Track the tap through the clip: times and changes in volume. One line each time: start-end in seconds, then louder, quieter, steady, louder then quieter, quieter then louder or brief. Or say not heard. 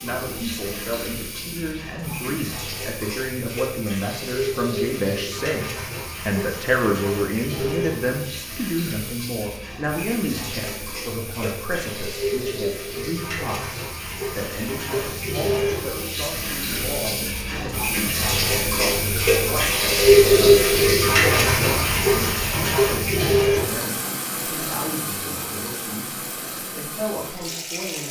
0.0-28.0 louder then quieter.